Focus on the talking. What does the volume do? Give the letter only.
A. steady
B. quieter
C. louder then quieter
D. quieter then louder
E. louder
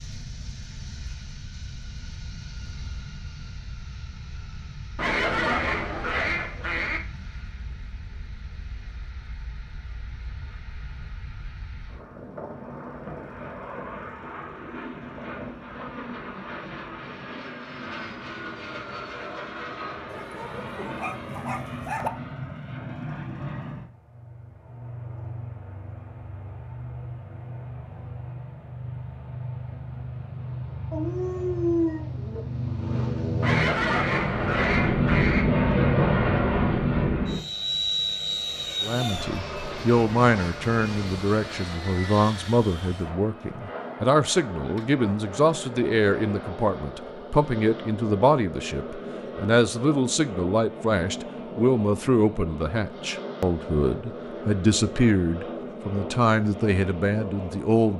A.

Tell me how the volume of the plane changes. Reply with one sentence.
The loudness of the plane goes up, then down.